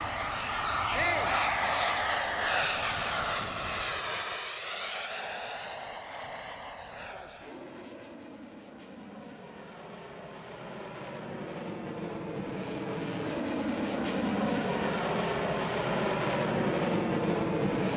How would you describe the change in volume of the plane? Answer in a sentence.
The volume of the plane goes down, then up.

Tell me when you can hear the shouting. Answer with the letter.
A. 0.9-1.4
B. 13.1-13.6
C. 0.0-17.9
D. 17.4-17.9
A.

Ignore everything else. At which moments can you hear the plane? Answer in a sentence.
The plane can be heard from 0.0 to 17.9 s.